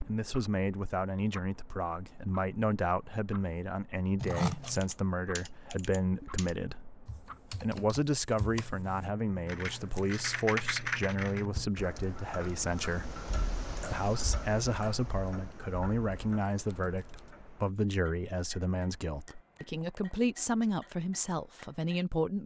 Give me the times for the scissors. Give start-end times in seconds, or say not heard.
4.2-4.9, 9.7-10.2, 16.6-17.3.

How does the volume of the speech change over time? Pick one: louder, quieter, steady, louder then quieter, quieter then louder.
steady.